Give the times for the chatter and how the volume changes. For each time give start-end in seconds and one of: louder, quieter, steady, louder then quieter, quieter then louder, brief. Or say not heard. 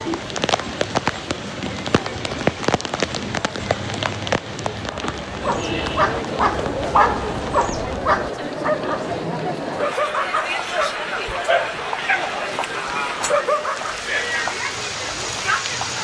0.0-15.9 louder.